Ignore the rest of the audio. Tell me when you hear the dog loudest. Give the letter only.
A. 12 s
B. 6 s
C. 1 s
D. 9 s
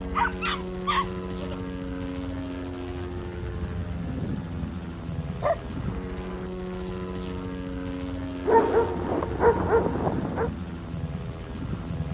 D.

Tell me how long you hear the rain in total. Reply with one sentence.
You can't hear the rain here.